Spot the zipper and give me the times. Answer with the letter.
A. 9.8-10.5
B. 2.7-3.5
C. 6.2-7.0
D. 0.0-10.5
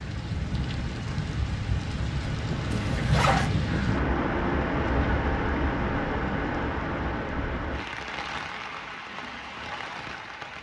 B.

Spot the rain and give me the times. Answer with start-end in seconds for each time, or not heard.
0.0-10.5.